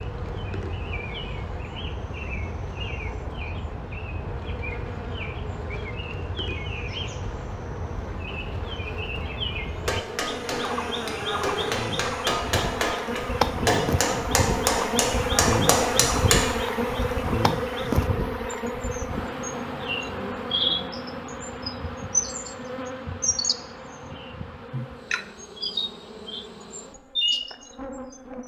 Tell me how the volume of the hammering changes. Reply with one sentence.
The loudness of the hammering goes up.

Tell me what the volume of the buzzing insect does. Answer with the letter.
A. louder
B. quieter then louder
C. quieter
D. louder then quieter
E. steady
D.